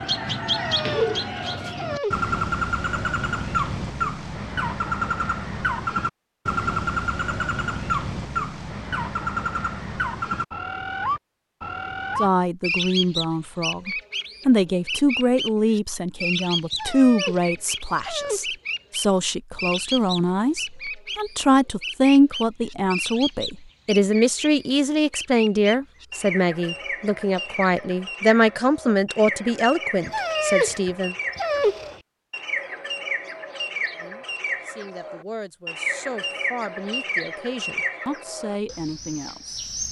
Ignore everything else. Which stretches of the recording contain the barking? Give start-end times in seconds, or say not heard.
0.5-2.3, 16.7-18.4, 30.1-31.9.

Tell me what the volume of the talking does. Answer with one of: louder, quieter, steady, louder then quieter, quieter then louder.
quieter.